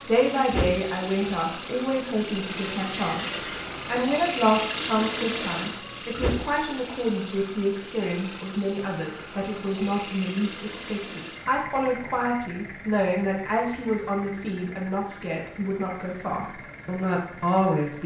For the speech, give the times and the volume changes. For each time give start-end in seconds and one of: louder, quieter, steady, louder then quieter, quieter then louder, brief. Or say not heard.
0.1-18.0 steady.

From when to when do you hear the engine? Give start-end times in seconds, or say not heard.
0.0-18.0.